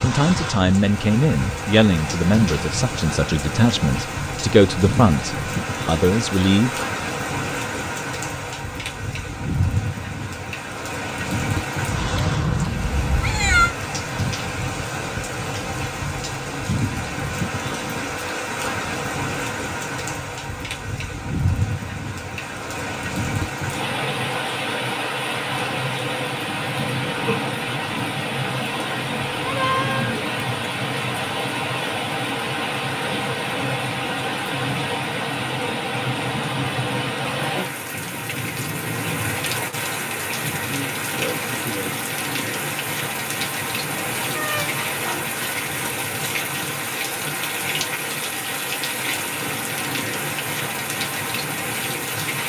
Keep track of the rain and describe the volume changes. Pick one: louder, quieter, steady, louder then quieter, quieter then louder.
steady.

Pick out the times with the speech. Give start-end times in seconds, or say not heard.
0.0-6.8.